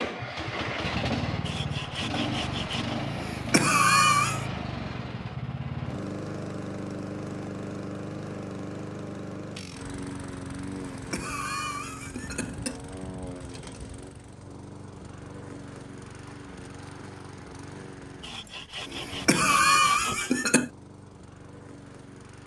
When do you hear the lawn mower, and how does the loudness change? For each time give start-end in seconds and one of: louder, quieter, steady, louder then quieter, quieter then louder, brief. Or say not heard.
0.0-22.4 quieter.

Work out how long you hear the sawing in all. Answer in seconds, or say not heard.
4 s.